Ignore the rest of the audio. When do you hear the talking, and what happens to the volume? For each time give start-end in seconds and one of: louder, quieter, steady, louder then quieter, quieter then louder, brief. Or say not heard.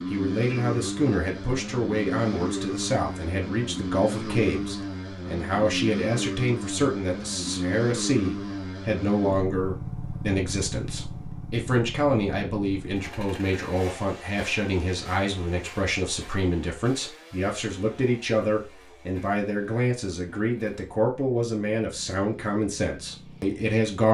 0.1-24.0 steady.